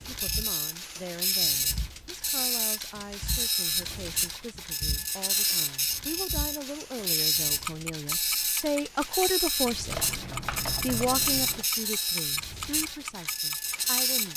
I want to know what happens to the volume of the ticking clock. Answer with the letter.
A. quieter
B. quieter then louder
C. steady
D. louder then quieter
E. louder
E.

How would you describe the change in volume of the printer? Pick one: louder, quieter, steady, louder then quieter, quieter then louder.
steady.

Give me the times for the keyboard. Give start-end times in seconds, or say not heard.
9.8-11.7.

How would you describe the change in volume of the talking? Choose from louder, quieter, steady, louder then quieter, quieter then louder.
louder then quieter.